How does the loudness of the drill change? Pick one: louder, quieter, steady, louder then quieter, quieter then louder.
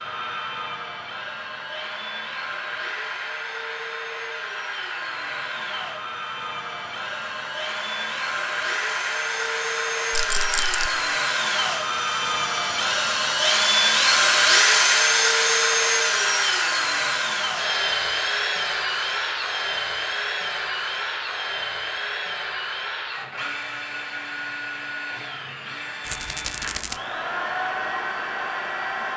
louder then quieter.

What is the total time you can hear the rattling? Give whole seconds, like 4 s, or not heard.
2 s.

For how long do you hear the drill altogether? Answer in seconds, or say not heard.
29 s.